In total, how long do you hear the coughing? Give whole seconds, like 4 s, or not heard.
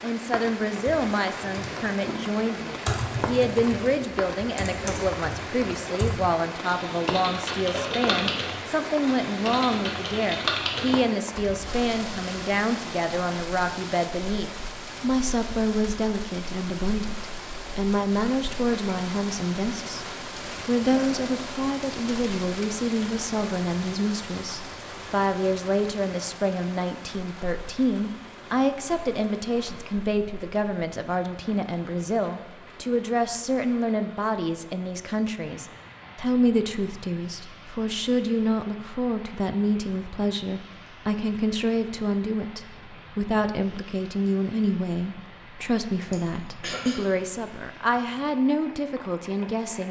2 s.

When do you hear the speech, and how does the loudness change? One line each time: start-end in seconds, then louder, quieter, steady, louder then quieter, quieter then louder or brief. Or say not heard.
0.0-20.1 steady
20.6-49.8 steady.